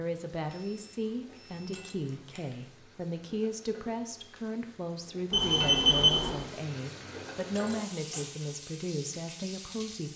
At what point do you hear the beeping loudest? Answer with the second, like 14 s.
6 s.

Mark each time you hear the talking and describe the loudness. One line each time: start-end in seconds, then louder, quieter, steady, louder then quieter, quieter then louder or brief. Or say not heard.
0.0-10.1 steady.